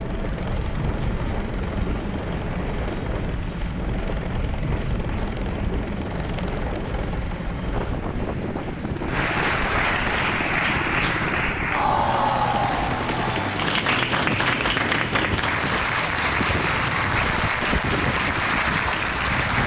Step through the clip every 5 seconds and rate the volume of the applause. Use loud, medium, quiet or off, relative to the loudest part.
quiet, medium, loud, loud.